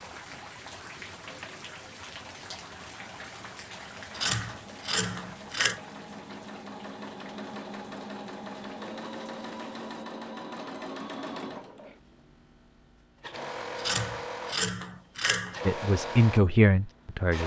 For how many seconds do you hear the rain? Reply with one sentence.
The rain can be heard for 10 seconds in total.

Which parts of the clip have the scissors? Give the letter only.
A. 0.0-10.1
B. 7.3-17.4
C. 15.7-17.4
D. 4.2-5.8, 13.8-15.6
D.